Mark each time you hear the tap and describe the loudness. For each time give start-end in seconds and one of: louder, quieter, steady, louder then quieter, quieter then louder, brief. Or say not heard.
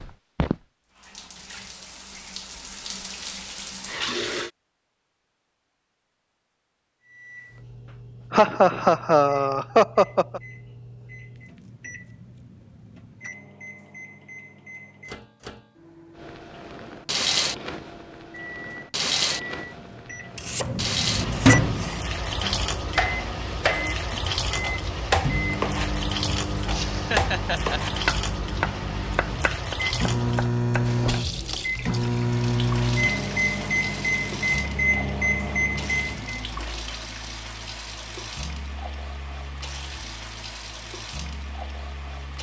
0.0-4.5 quieter then louder
16.2-42.3 quieter.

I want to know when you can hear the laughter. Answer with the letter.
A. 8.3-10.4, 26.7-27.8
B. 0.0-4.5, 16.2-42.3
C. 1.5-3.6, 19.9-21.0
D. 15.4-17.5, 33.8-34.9
A.